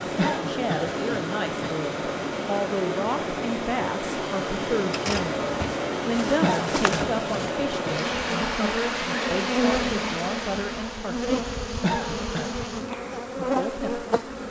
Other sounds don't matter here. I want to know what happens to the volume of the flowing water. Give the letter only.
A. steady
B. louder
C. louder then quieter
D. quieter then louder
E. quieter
A.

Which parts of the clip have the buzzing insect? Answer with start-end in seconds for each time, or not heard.
4.9-14.4.